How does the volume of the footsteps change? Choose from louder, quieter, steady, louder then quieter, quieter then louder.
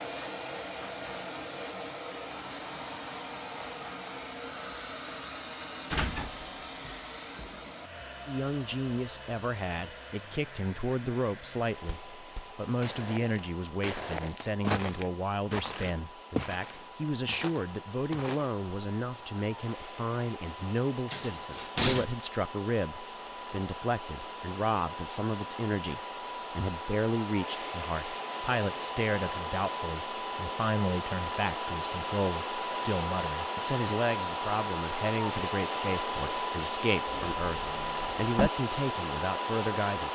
louder then quieter.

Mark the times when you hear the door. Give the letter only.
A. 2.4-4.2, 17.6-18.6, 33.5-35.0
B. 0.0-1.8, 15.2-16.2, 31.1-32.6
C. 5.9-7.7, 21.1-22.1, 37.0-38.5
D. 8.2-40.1
C.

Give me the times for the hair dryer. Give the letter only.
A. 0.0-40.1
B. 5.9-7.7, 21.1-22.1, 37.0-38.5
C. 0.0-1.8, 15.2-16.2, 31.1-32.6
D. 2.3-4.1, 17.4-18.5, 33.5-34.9
A.